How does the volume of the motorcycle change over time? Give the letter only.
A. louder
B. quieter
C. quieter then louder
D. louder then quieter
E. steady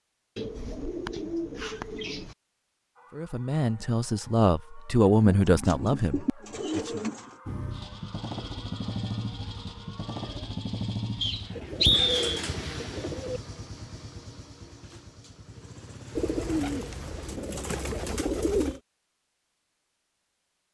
B.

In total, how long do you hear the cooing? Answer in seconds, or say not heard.
9 s.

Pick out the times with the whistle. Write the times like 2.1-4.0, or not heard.
11.2-12.4.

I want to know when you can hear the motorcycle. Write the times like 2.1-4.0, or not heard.
7.5-17.6.